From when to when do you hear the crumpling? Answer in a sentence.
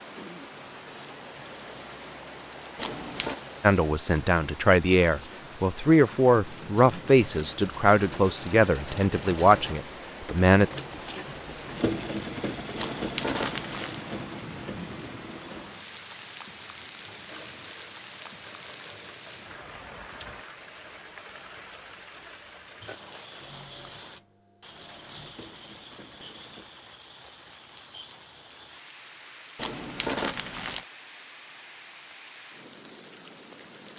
You can hear the crumpling from 2.8 to 3.4 s, from 12.8 to 14.0 s and from 29.6 to 30.9 s.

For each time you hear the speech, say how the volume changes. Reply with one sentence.
The speech can be heard from 3.6 to 10.7 s, at a steady volume.